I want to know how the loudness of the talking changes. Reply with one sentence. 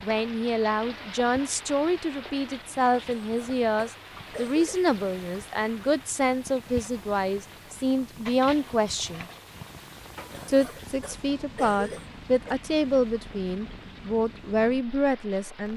The loudness of the talking stays about the same.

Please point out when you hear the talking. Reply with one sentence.
The talking can be heard from 0.0 to 9.2 s and from 10.4 to 15.7 s.